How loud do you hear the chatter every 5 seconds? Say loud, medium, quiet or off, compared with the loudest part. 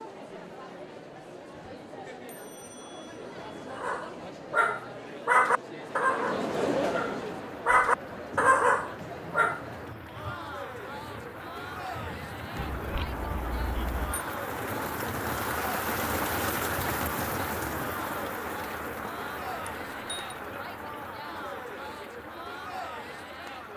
medium, loud, medium, medium, medium.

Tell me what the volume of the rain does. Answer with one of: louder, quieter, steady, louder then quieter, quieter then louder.
louder then quieter.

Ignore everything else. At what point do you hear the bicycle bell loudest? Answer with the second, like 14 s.
13 s.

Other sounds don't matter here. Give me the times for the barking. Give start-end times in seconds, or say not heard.
3.7-9.6.